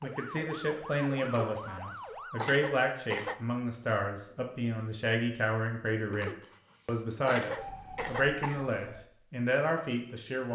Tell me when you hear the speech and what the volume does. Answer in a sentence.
The speech can be heard from 0.0 to 10.5 s, at a steady volume.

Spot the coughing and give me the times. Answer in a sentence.
You can hear the coughing from 1.2 to 3.4 s and from 6.0 to 8.7 s.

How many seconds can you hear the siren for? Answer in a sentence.
You can hear the siren for 4 seconds altogether.